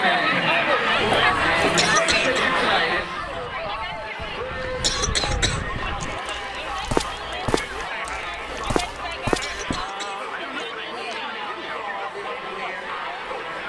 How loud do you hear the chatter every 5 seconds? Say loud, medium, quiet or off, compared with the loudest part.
loud, medium, medium.